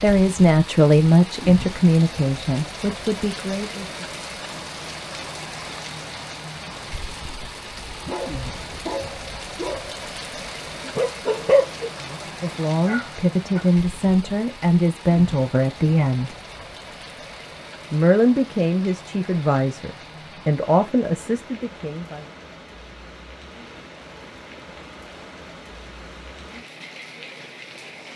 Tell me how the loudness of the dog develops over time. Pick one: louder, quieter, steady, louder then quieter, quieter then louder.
louder then quieter.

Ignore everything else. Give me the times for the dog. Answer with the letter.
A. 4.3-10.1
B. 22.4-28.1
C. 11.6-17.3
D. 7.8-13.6
D.